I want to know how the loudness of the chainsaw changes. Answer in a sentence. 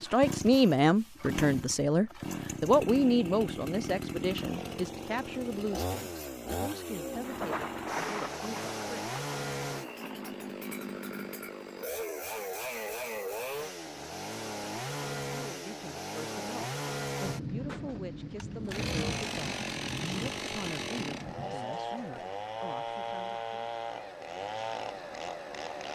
The loudness of the chainsaw stays about the same.